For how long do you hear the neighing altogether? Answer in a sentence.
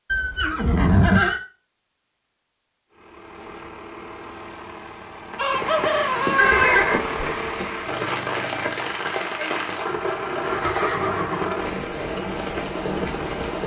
You can hear the neighing for 3 seconds altogether.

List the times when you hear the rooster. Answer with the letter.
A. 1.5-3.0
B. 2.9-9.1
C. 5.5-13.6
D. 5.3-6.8
D.